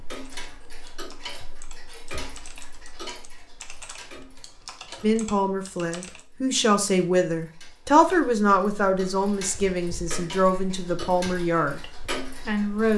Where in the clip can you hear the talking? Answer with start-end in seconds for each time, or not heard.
5.0-11.8, 12.4-12.9.